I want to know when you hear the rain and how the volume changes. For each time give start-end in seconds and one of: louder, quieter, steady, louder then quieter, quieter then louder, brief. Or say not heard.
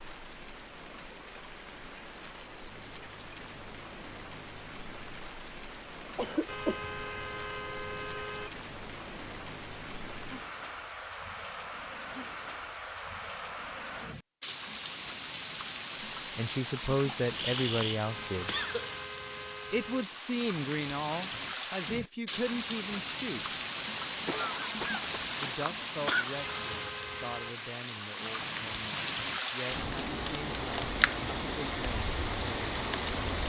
0.0-33.4 louder.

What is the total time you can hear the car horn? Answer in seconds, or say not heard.
5 s.